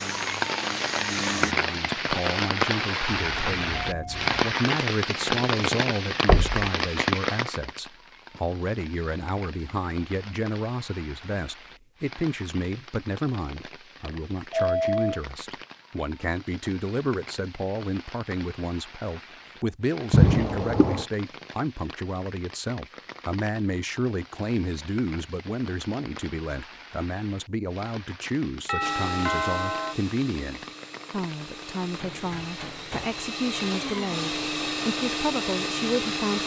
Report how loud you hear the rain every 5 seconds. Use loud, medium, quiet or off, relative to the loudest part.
loud, loud, quiet, quiet, quiet, quiet, quiet, off.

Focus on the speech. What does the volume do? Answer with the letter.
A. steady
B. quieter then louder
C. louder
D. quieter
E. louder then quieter
A.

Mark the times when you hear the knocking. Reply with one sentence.
You can hear the knocking from 6.2 to 6.7 s and from 20.1 to 21.1 s.